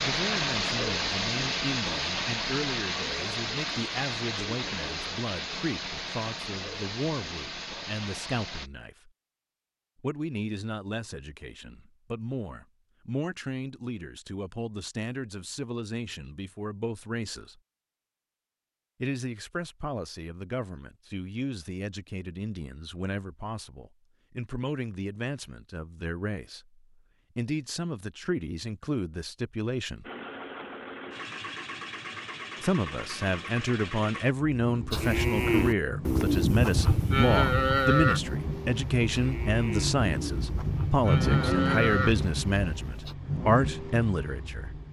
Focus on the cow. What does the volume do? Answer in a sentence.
The volume of the cow goes down, then up.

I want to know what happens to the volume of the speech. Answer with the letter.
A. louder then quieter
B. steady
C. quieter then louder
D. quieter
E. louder
E.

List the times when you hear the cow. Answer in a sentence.
The cow can be heard from 34.9 to 43.1 s.